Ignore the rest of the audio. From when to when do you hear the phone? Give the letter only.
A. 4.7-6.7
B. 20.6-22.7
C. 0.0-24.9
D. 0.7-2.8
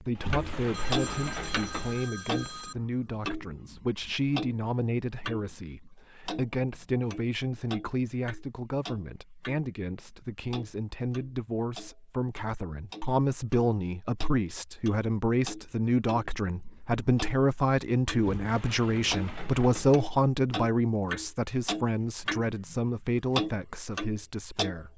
D.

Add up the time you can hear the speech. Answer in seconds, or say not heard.
25 s.